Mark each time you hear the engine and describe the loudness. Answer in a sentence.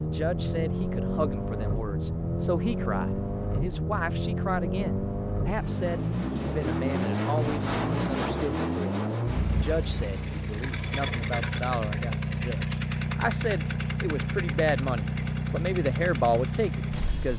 You can hear the engine from 0.0 to 17.3 s, at a steady volume.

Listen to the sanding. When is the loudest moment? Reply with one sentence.
The loudest moment of the sanding is at 8 seconds.